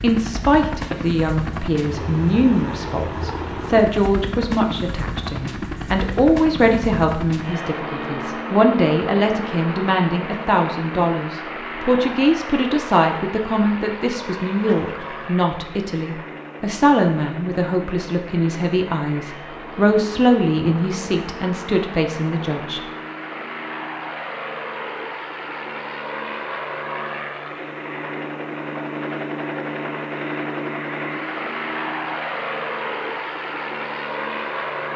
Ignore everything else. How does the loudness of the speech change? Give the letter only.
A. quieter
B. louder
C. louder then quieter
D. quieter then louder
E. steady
E.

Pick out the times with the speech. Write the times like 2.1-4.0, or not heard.
0.0-22.8.